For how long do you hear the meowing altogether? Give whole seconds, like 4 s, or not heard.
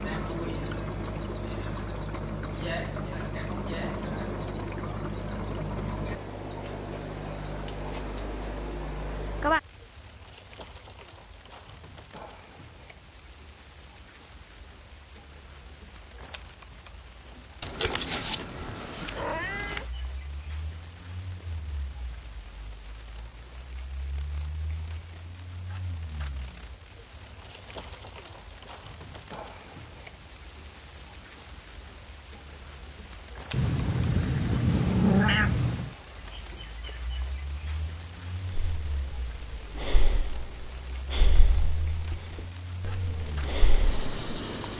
5 s.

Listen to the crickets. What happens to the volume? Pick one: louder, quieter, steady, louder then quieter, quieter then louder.
louder.